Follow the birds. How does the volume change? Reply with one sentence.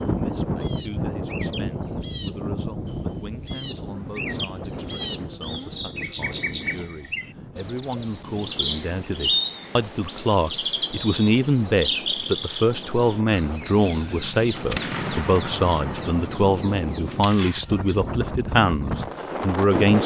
The loudness of the birds goes up, then down.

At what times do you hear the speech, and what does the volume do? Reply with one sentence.
The speech can be heard from 0.1 to 20.0 s, getting louder.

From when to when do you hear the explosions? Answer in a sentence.
You can hear the explosions from 14.6 to 17.6 s.